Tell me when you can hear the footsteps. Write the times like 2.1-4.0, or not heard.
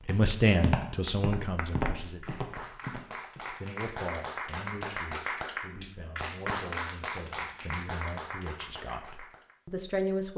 0.0-3.8.